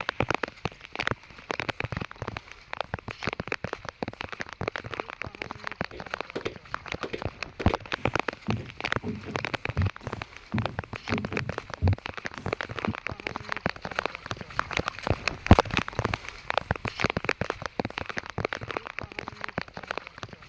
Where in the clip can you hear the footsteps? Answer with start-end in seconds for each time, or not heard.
5.9-12.9.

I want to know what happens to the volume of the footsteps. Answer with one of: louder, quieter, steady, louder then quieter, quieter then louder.
steady.